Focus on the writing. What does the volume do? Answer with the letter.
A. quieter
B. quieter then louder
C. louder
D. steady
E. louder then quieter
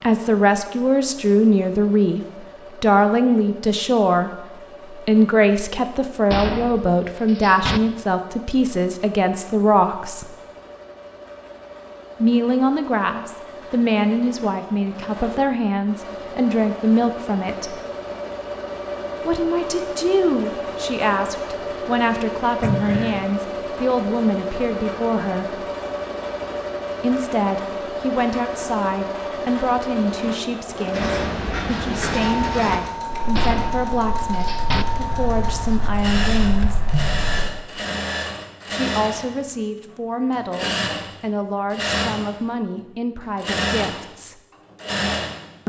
B.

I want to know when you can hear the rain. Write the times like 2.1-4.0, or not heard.
not heard.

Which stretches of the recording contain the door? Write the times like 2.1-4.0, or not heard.
6.3-7.8, 22.6-23.2, 33.4-34.9.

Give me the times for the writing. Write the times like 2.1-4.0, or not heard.
30.9-37.5.